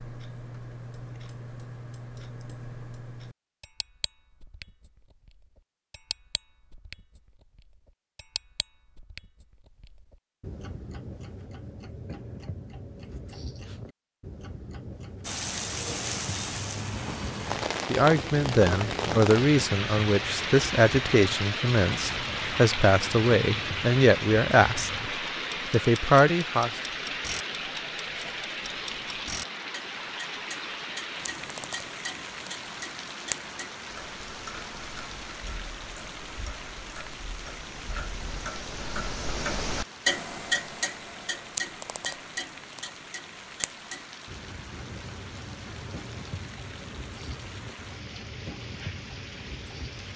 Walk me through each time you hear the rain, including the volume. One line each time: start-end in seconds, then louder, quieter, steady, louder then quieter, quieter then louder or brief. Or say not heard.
15.2-50.1 quieter.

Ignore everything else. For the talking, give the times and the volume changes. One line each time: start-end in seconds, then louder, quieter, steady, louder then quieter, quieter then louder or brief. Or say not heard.
17.9-24.9 steady
25.7-26.7 brief.